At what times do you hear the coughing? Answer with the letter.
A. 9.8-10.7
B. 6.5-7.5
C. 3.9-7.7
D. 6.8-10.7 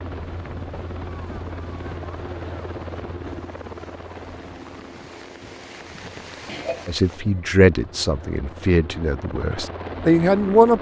B.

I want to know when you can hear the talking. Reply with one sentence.
You can hear the talking from 6.8 to 10.7 s.